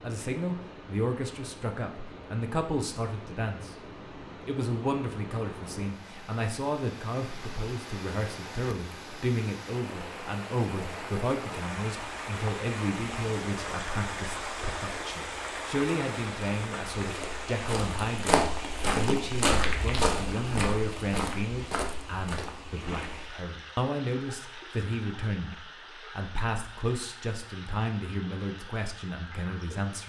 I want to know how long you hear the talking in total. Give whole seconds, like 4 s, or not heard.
29 s.